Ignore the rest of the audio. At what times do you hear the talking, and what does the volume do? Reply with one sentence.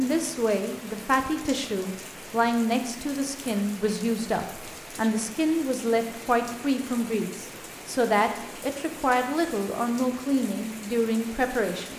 You can hear the talking from 0.0 to 11.9 s, at a steady volume.